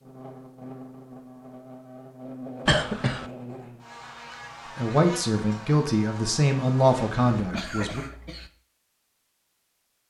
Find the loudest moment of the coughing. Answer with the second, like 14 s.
3 s.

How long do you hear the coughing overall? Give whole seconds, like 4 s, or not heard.
2 s.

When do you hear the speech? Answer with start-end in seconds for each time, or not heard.
4.8-8.0.